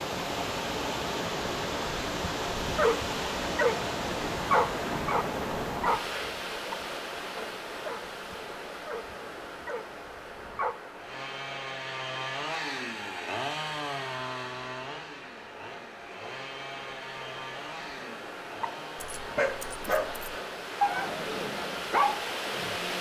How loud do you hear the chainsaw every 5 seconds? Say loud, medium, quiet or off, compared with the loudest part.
off, off, loud, medium, medium.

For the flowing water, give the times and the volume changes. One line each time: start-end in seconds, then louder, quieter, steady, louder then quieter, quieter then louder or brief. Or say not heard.
0.0-22.9 quieter then louder.